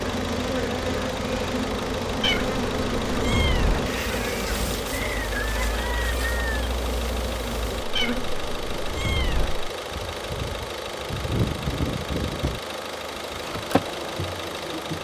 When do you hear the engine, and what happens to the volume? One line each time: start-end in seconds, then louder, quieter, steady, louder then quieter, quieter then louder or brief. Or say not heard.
0.0-14.9 steady.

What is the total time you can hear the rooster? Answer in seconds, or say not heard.
2 s.